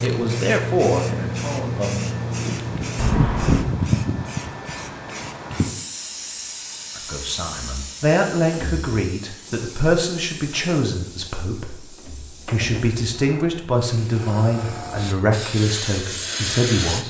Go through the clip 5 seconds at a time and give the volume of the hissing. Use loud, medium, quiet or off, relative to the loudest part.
loud, medium, quiet, loud.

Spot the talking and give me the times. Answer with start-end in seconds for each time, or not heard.
0.0-2.0, 7.0-17.0.